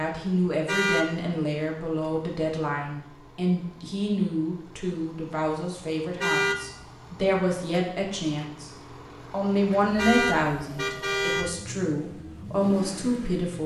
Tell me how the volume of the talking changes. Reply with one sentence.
The loudness of the talking stays about the same.